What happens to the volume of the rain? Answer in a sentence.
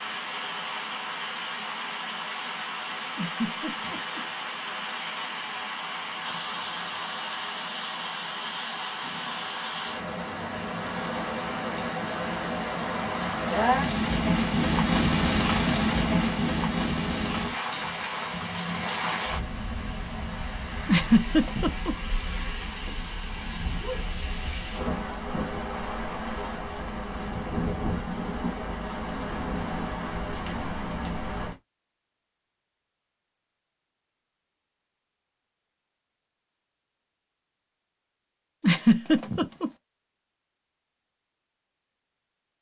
The loudness of the rain goes up, then down.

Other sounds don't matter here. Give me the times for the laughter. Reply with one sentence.
You can hear the laughter from 3.1 to 4.2 s, from 20.9 to 21.9 s and from 38.6 to 39.7 s.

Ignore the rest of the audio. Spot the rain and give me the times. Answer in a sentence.
The rain can be heard from 0.0 to 31.6 s.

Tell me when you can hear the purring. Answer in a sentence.
You can't hear the purring here.